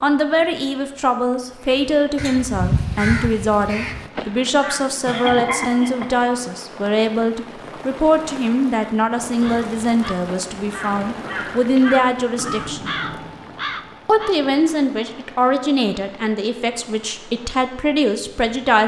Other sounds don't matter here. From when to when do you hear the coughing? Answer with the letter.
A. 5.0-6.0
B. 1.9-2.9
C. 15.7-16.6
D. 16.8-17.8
A.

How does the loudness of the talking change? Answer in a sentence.
The volume of the talking stays about the same.